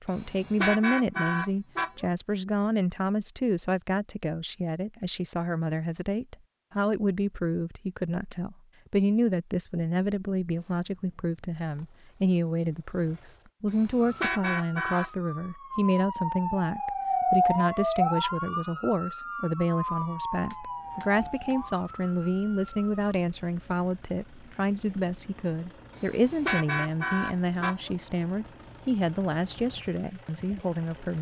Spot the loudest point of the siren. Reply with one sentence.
The volume of the siren peaks at 18 seconds.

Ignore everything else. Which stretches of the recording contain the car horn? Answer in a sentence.
You can hear the car horn from 0.1 to 2.0 s, from 13.7 to 15.1 s and from 25.9 to 27.9 s.